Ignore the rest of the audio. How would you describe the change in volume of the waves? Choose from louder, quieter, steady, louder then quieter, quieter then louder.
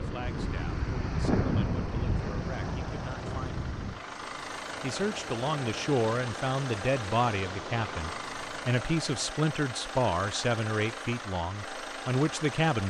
quieter.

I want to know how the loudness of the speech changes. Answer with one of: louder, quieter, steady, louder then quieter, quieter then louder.
louder.